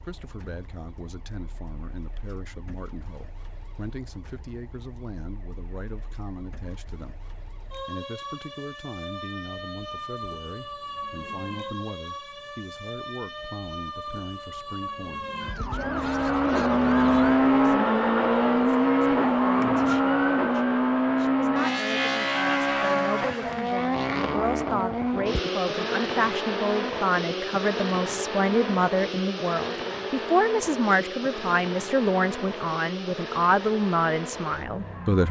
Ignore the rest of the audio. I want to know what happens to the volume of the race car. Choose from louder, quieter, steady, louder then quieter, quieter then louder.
quieter.